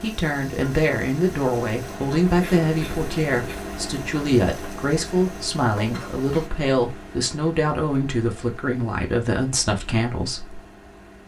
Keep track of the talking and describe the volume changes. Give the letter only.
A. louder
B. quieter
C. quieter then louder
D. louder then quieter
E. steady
E.